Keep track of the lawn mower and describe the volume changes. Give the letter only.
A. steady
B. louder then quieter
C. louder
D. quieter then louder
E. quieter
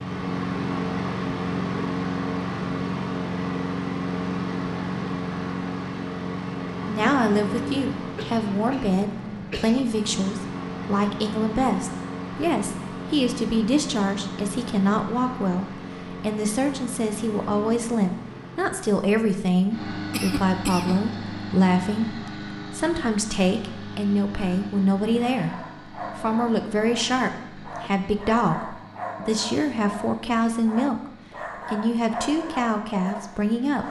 E.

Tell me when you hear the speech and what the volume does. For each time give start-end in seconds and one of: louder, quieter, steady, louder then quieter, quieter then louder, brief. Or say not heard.
6.8-33.8 steady.